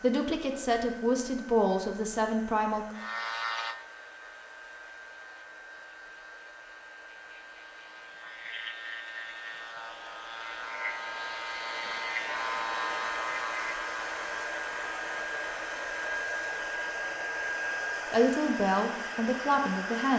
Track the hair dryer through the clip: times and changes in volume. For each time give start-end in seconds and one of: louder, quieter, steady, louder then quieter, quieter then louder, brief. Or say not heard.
0.0-20.1 louder.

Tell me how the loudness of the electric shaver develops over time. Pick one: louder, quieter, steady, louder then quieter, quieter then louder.
quieter then louder.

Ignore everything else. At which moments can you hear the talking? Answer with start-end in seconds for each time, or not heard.
0.0-3.0, 18.1-20.1.